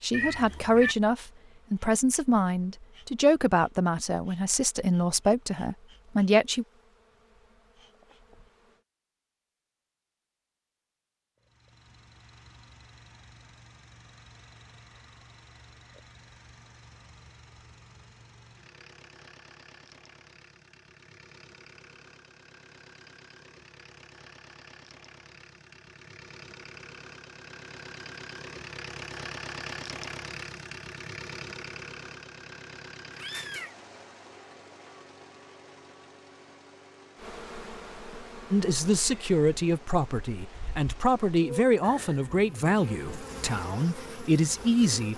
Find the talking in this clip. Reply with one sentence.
You can hear the talking from 0.0 to 6.7 s and from 38.5 to 45.1 s.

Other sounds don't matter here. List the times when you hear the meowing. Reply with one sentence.
The meowing can be heard from 0.1 to 0.9 s and from 33.1 to 33.8 s.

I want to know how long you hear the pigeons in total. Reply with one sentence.
You can't hear the pigeons here.